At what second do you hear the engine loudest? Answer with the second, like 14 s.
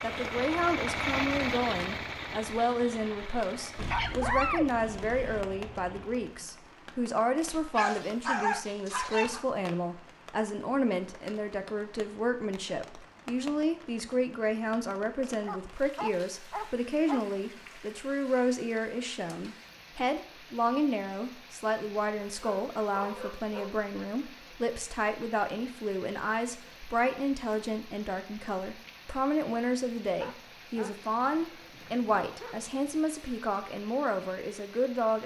1 s.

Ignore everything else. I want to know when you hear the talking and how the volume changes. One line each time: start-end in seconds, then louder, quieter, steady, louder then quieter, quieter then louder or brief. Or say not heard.
0.0-35.2 steady.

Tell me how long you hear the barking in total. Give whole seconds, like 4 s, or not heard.
10 s.